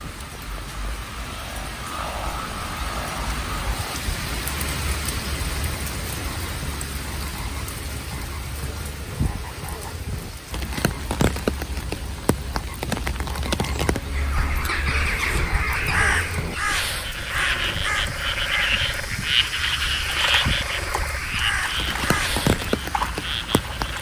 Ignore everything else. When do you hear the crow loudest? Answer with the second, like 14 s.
16 s.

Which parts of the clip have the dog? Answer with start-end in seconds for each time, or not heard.
not heard.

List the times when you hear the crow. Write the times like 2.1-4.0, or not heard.
14.1-22.6.